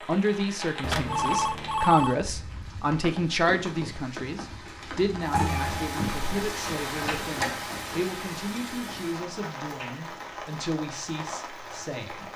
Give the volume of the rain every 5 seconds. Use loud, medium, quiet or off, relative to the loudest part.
medium, loud, medium.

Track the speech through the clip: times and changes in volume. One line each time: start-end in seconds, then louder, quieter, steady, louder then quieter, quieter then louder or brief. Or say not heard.
0.1-12.3 quieter.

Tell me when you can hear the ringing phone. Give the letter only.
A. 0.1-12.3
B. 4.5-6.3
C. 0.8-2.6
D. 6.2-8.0
C.